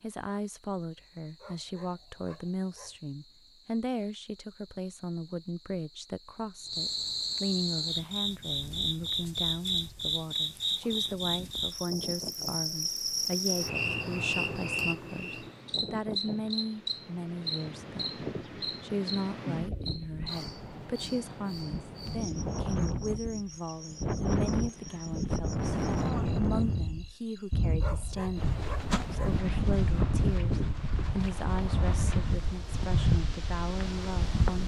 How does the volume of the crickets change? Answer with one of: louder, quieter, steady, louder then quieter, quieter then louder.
louder then quieter.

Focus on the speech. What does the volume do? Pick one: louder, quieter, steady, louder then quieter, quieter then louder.
steady.